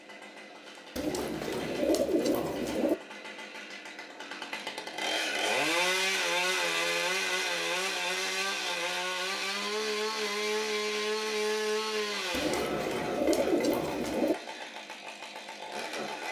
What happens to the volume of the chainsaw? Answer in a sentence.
The volume of the chainsaw goes up, then down.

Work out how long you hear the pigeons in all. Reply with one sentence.
You can hear the pigeons for 4 seconds altogether.